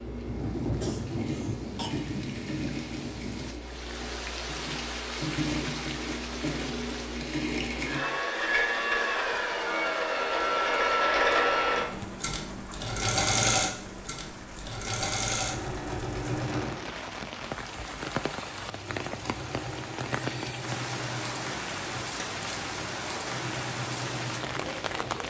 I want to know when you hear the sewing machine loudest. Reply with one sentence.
The volume of the sewing machine peaks at 11 seconds.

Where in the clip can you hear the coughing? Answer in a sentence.
The coughing can be heard from 0.8 to 1.9 s.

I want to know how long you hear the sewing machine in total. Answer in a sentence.
The sewing machine can be heard for 25 seconds in total.